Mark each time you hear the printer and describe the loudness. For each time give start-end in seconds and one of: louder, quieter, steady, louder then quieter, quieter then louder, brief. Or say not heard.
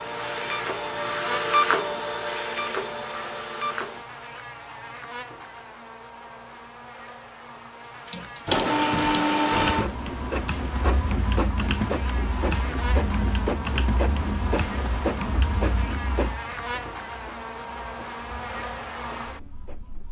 0.0-4.0 louder then quieter
8.4-20.0 quieter.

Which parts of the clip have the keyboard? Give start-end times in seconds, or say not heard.
8.1-15.6.